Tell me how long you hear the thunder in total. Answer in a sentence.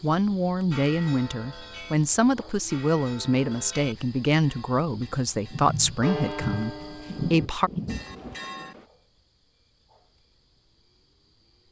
The thunder can be heard for 3 seconds in total.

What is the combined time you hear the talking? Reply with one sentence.
The talking can be heard for 8 seconds in total.